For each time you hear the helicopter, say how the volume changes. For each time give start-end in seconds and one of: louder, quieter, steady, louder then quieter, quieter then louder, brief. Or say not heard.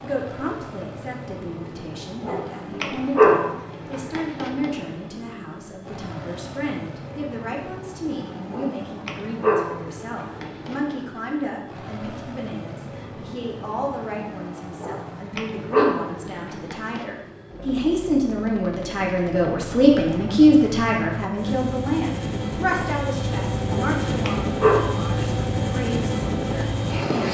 0.0-27.3 louder.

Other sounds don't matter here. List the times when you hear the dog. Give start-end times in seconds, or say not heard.
2.2-4.7, 8.5-11.1, 14.8-17.1, 23.6-24.9.